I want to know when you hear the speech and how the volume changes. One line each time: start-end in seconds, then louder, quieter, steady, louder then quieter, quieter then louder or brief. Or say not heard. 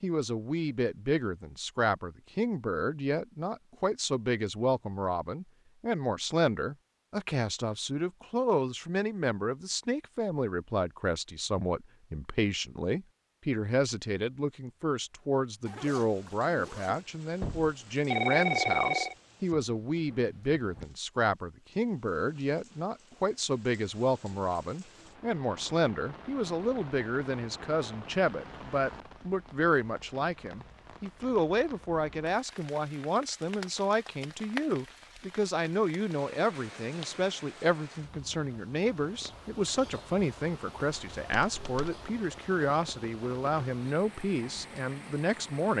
0.0-45.7 steady.